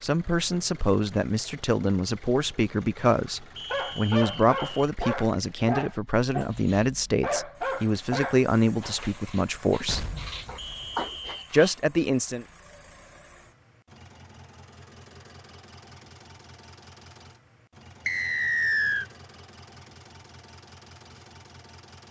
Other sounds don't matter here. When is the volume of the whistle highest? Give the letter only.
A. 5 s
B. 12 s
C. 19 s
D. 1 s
C.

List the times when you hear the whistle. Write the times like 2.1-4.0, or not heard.
3.5-4.8, 10.6-11.6, 18.1-19.1.